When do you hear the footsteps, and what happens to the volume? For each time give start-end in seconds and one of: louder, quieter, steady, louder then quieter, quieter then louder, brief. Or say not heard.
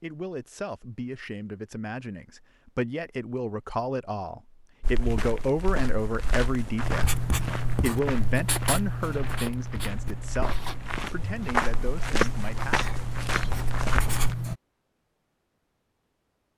4.8-14.3 louder.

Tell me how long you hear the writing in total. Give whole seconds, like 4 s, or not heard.
8 s.